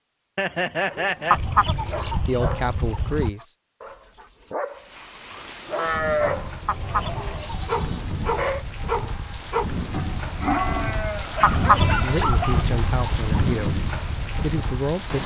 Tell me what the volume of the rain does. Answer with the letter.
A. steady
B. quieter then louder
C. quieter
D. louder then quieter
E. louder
E.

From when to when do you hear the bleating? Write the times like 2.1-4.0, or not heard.
0.3-2.0, 5.8-8.7, 10.3-12.2.